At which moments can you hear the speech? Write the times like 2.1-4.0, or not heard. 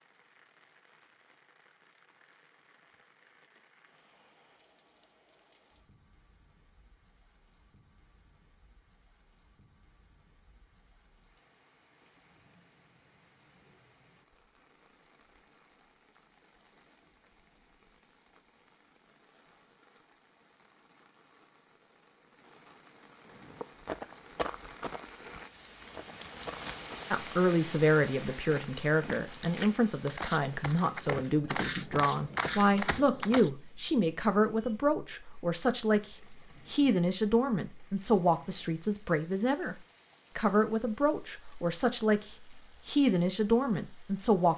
27.1-39.8, 40.4-44.5.